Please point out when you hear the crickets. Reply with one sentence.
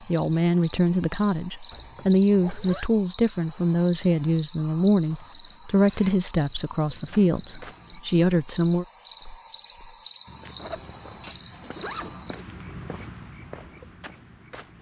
The crickets can be heard from 0.0 to 12.4 s.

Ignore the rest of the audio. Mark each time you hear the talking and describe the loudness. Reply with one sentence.
You can hear the talking from 0.1 to 8.8 s, at a steady volume.